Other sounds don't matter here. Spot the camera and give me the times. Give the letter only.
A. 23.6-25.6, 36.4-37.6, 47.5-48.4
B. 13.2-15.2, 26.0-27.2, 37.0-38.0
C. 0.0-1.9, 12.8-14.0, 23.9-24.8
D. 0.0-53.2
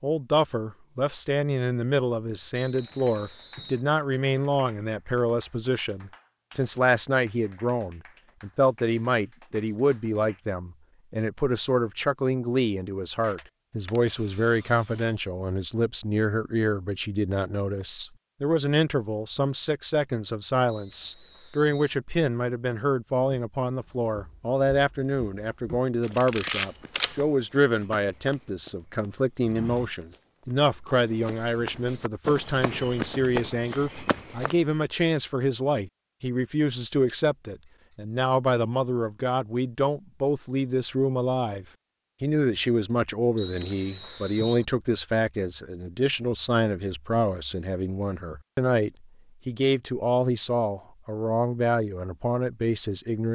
B.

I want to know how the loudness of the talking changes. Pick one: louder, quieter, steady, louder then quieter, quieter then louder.
steady.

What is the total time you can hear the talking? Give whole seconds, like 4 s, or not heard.
53 s.